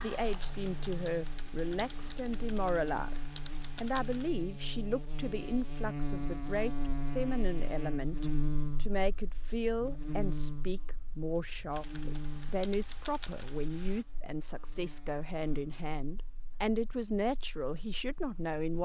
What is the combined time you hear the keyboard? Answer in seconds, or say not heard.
7 s.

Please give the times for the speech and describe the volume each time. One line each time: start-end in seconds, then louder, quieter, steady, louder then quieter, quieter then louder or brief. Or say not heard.
0.0-18.8 steady.